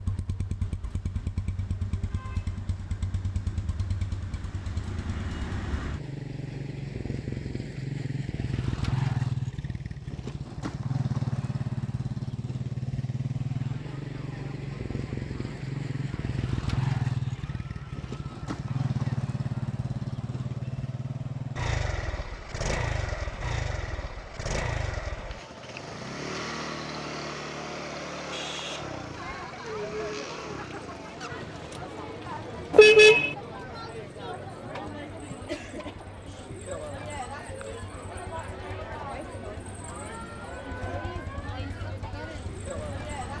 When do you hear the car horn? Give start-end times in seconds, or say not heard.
32.7-33.4.